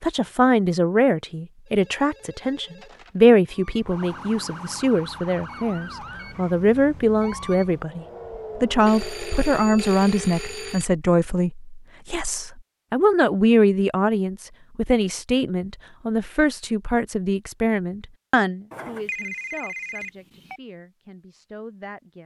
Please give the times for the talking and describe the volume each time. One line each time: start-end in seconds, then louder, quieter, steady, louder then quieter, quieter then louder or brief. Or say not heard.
0.0-22.2 quieter.